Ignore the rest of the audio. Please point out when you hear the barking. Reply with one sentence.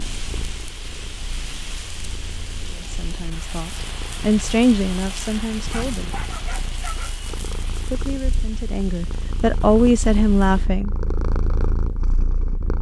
The barking can be heard from 5.6 to 7.2 s.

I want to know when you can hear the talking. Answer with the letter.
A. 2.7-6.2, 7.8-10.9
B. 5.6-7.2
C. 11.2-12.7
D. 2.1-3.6
A.